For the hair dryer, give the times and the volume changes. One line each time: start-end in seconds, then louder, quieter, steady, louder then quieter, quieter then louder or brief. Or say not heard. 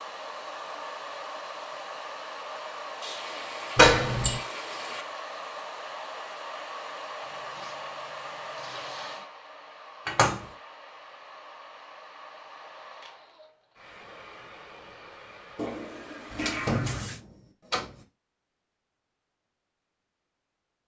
0.0-16.5 quieter.